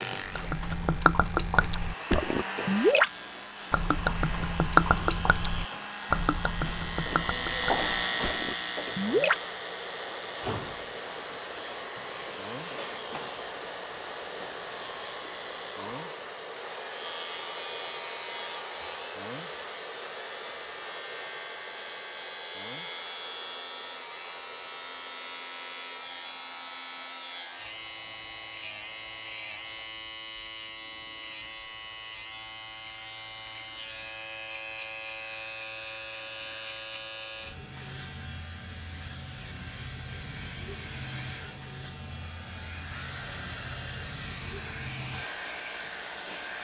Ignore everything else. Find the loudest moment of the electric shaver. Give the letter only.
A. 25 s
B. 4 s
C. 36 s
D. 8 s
D.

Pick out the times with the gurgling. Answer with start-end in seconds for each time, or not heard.
0.2-3.1, 3.7-9.4.